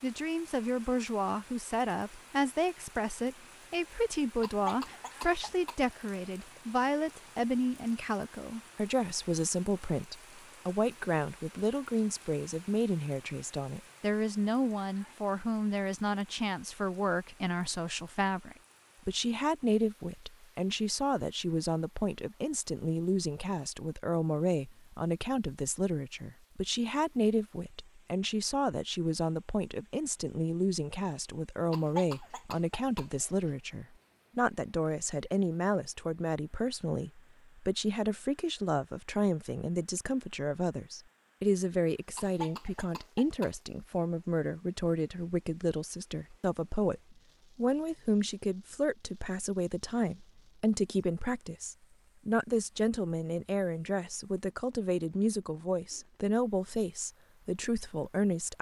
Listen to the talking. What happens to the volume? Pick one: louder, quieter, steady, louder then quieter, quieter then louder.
steady.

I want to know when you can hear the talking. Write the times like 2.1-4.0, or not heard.
0.0-58.5.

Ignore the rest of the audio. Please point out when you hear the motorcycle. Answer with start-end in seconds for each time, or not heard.
not heard.